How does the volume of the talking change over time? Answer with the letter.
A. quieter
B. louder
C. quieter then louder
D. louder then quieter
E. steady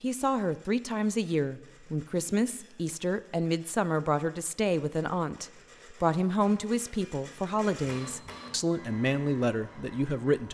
E.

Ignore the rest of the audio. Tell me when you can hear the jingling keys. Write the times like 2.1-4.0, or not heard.
not heard.